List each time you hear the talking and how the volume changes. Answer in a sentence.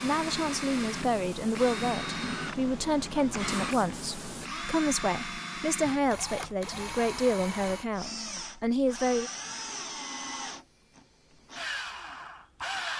The talking can be heard from 0.0 to 9.3 s, at a steady volume.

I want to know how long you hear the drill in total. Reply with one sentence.
You can hear the drill for 13 seconds altogether.